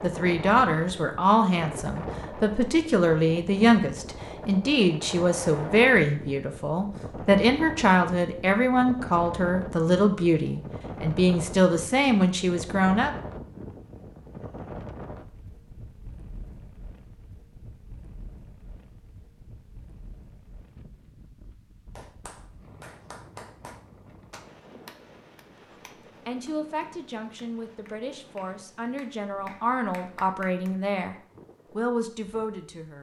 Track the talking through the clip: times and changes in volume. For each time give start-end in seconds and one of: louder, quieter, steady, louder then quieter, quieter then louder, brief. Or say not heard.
0.0-13.2 steady
26.2-31.1 louder
31.8-32.9 brief.